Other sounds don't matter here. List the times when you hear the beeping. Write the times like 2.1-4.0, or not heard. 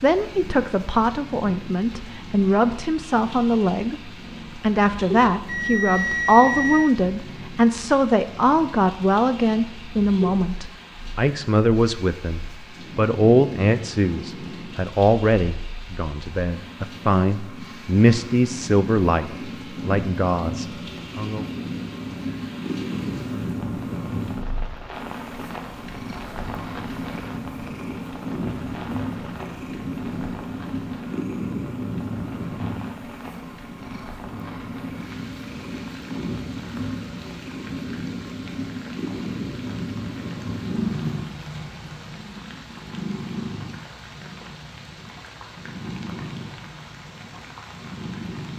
5.5-7.0.